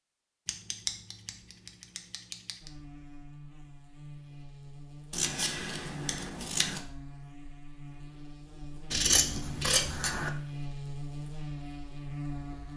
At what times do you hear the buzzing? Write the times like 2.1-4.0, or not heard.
2.6-12.7.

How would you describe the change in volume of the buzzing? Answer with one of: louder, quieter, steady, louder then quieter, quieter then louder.
louder.